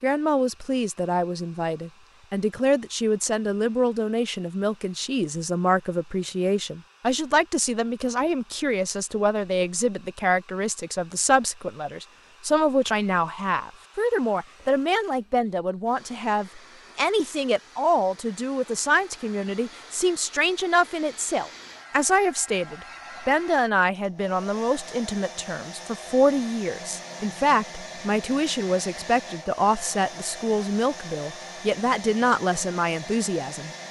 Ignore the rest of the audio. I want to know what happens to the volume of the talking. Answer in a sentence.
The volume of the talking stays about the same.